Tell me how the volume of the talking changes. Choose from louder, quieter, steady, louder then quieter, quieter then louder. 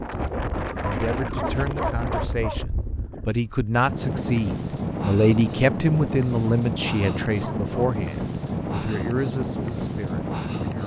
louder then quieter.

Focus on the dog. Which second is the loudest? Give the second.
2 s.